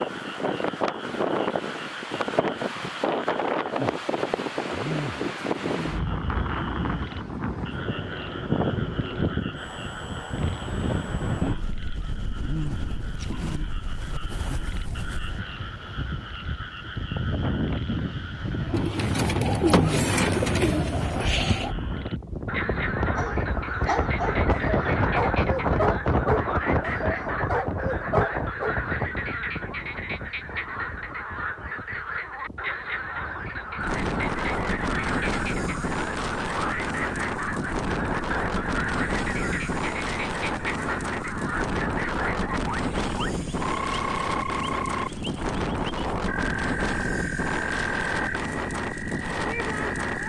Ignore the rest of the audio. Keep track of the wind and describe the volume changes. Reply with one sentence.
The loudness of the wind stays about the same.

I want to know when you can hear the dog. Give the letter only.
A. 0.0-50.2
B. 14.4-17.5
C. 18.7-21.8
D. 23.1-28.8
D.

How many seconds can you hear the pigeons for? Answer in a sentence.
The pigeons can be heard for 3 seconds in total.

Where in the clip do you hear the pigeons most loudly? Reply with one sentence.
The loudest moment of the pigeons is at 20 seconds.